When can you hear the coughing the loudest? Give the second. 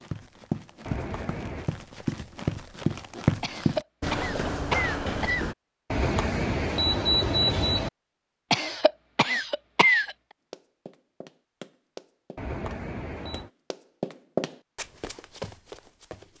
10 s.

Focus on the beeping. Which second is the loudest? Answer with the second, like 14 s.
7 s.